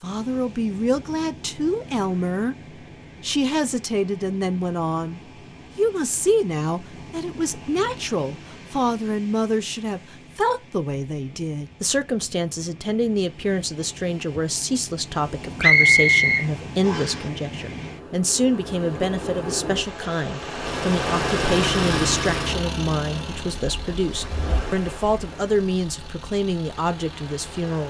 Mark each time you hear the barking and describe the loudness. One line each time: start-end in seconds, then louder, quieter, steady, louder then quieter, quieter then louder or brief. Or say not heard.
not heard.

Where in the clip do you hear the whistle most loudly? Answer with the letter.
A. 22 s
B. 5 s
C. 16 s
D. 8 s
C.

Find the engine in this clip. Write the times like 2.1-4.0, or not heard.
20.6-27.8.